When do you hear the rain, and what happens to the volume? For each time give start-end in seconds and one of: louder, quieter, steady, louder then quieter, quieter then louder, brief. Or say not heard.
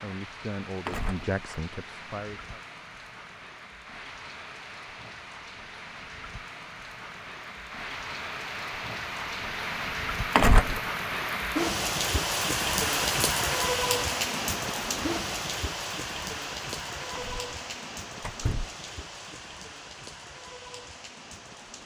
0.0-21.8 louder then quieter.